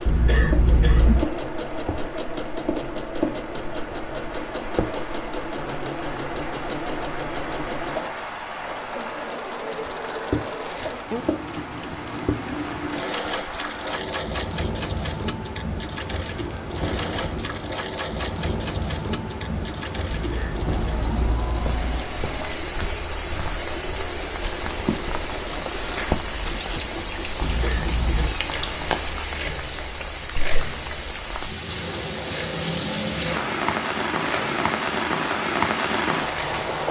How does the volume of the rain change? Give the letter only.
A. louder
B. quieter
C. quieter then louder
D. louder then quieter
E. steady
A.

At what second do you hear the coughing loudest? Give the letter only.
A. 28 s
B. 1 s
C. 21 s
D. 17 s
B.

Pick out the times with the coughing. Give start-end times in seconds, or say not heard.
0.1-1.2, 20.1-22.1, 27.4-28.3.